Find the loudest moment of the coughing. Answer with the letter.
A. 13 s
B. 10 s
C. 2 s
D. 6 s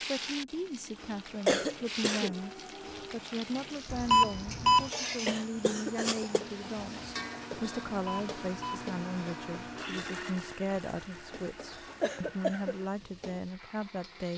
C.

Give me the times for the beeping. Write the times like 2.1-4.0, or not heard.
3.9-4.9, 7.9-8.8.